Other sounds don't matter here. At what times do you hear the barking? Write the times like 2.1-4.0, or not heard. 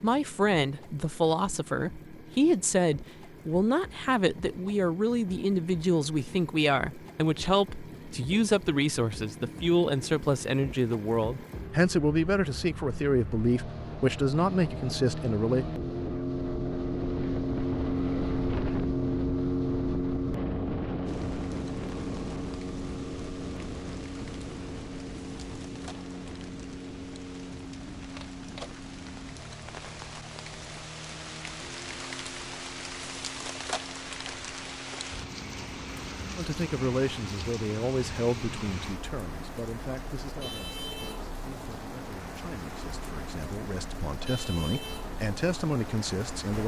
not heard.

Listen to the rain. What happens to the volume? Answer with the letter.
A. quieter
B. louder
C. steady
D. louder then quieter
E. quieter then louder
B.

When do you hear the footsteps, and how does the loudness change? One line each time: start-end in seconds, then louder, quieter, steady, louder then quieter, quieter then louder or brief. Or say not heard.
not heard.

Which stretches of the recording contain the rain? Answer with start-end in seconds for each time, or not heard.
21.1-46.6.